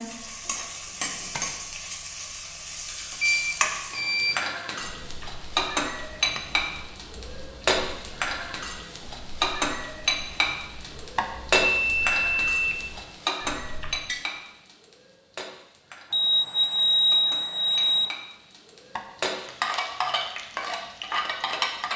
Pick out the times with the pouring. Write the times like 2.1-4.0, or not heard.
not heard.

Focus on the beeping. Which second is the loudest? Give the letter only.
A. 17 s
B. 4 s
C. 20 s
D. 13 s
A.